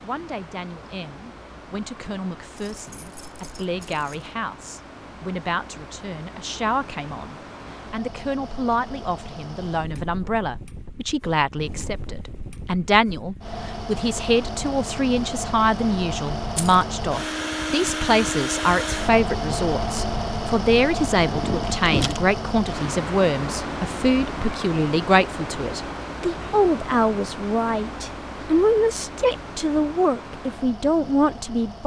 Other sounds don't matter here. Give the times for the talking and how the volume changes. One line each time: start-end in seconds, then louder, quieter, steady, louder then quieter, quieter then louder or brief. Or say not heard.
0.0-31.8 louder.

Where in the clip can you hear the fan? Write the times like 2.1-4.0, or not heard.
0.0-31.8.